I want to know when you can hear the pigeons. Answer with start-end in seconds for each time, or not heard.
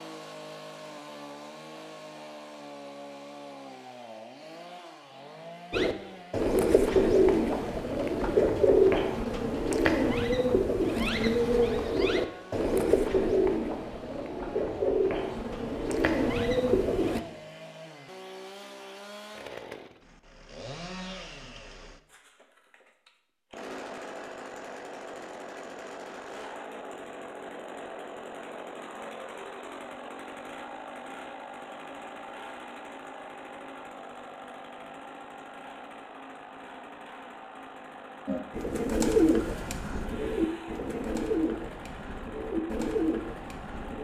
5.7-17.2, 38.2-43.9.